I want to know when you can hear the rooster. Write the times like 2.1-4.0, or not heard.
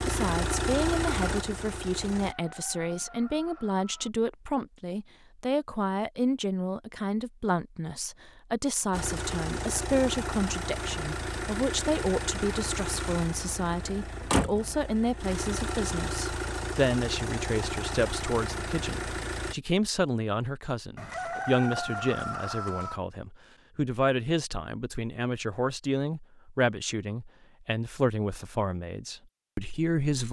2.2-4.1, 20.9-23.0.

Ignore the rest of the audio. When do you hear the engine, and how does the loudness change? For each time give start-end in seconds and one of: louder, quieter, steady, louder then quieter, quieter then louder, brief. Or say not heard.
0.0-2.4 brief
8.9-19.6 steady.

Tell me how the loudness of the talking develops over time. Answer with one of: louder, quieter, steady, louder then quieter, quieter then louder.
steady.